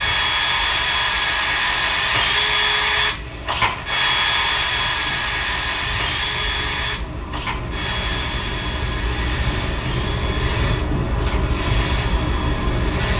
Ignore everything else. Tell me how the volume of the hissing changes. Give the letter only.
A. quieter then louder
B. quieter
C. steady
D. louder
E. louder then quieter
D.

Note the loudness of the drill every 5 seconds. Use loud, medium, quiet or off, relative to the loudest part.
loud, medium, quiet.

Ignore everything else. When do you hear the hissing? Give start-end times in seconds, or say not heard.
0.0-13.1.